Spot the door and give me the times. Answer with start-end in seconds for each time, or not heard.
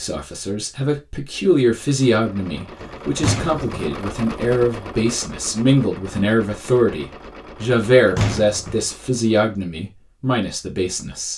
2.8-3.7, 8.2-8.8.